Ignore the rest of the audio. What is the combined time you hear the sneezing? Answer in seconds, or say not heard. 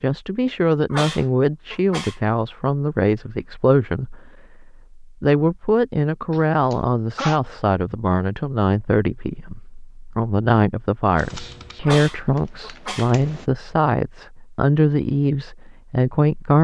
4 s.